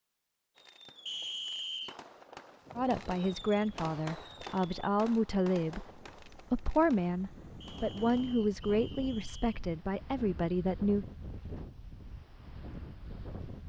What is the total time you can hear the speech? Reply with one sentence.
You can hear the speech for 8 seconds altogether.